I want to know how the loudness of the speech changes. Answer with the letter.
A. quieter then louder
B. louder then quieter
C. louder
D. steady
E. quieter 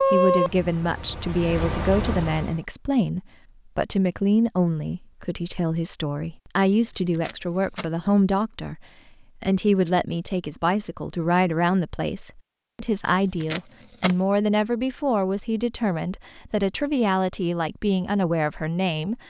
D.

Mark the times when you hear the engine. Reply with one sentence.
The engine can be heard from 0.0 to 2.6 s.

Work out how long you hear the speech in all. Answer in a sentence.
You can hear the speech for 19 seconds altogether.